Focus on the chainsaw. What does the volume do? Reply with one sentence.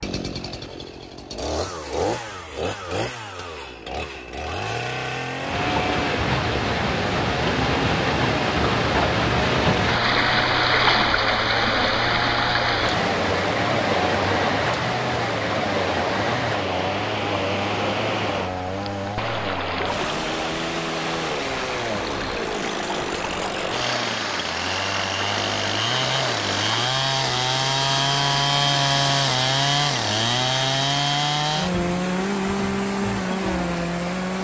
The loudness of the chainsaw goes up.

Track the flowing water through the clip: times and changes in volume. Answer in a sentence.
The flowing water can be heard from 5.3 to 34.4 s, getting quieter.